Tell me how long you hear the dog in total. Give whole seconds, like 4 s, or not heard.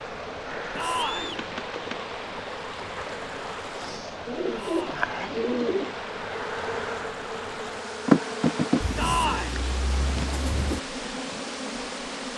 not heard.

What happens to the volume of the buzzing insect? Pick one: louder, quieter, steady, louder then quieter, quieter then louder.
louder then quieter.